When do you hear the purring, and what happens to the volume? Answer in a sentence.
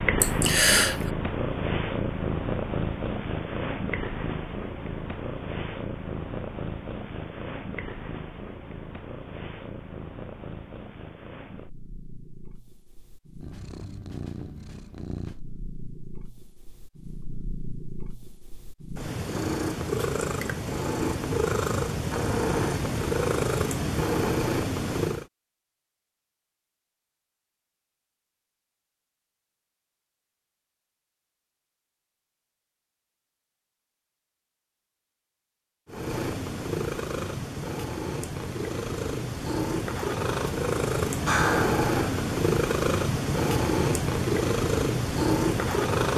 You can hear the purring from 0.0 to 25.2 s, getting quieter then louder; and from 35.9 to 46.1 s, getting louder.